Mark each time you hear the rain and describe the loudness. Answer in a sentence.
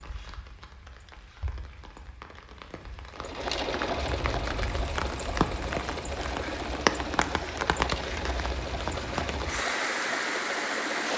The rain can be heard from 0.0 to 11.1 s, getting louder.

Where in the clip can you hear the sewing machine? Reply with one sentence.
The sewing machine can be heard from 3.1 to 11.1 s.